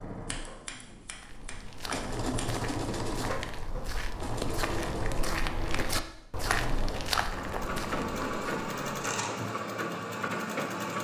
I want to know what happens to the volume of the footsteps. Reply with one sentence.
The loudness of the footsteps goes up.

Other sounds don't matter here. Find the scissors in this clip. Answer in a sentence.
You can hear the scissors from 0.2 to 2.5 s and from 8.9 to 9.3 s.